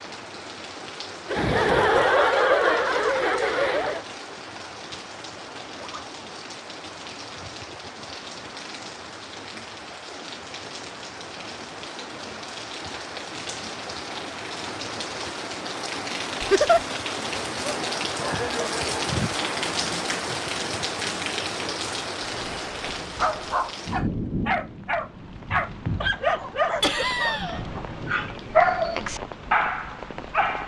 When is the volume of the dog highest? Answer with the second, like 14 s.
29 s.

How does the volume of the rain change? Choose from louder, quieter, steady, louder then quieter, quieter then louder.
louder then quieter.